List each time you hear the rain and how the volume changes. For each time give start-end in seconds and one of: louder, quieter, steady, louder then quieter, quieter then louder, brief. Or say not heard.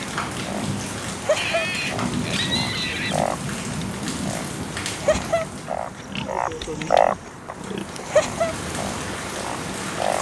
0.0-10.1 quieter then louder.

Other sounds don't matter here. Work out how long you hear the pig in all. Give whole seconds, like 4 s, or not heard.
4 s.